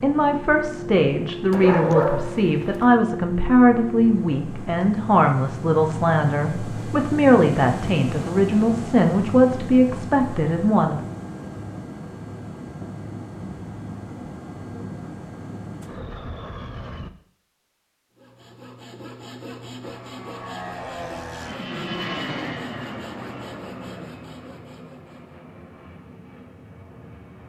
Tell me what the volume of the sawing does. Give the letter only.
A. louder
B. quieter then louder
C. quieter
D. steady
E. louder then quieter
C.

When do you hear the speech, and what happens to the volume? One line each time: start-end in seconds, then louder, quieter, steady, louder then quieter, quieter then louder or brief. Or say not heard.
0.0-11.0 steady.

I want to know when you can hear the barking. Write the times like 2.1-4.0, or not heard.
1.5-2.9.